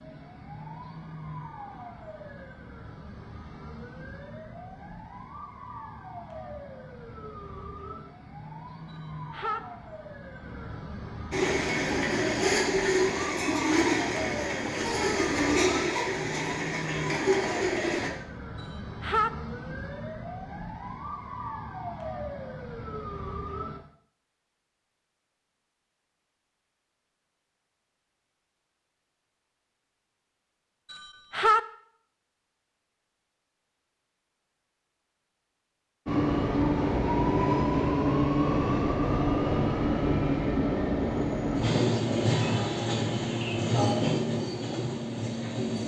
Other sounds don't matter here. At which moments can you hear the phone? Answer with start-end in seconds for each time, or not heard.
8.9-9.6, 18.6-19.3, 30.9-31.6.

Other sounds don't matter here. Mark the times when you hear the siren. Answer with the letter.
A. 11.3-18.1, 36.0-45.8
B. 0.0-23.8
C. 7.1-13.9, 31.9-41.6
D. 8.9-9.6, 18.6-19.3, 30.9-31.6
B.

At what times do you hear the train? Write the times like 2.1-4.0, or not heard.
11.3-18.1, 36.0-45.8.